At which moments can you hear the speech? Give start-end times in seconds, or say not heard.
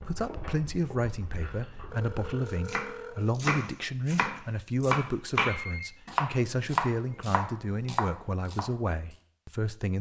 0.0-9.9.